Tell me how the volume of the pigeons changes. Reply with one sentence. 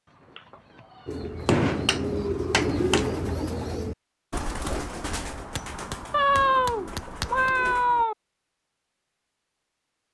The volume of the pigeons goes down.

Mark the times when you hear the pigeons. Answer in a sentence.
You can hear the pigeons from 1.1 to 8.1 s.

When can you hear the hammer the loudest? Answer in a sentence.
The loudest moment of the hammer is at 2 seconds.